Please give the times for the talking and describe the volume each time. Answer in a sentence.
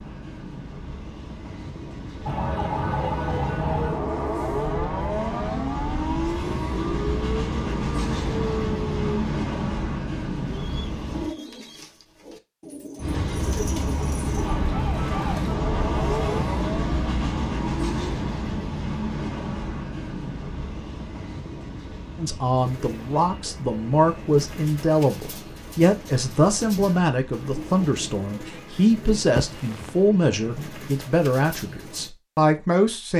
The talking can be heard from 22.1 to 33.1 s, at a steady volume.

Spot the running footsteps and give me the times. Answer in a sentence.
You can't hear the running footsteps here.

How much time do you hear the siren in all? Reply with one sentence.
The siren can be heard for 11 seconds in total.